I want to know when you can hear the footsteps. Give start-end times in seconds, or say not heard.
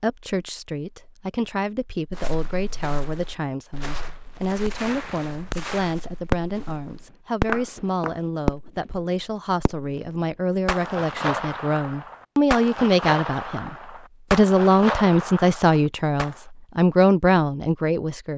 2.1-8.2.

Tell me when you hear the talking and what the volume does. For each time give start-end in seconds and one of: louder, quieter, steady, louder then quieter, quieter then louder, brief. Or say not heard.
0.0-18.3 louder.